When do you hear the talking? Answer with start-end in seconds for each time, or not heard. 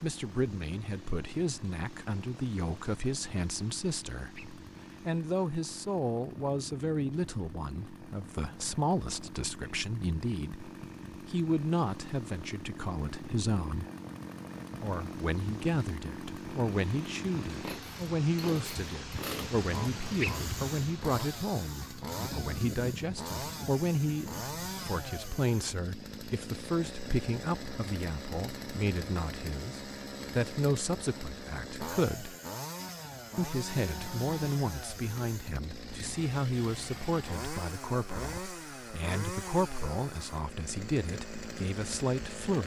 0.0-13.8, 14.8-32.4, 33.4-42.6.